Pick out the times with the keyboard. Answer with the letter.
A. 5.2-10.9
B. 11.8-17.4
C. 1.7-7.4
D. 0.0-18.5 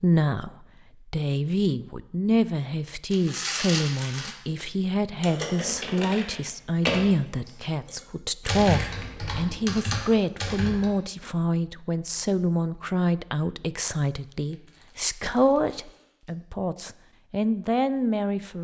A.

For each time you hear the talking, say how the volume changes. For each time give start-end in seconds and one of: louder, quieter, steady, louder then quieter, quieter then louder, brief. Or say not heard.
0.0-18.5 steady.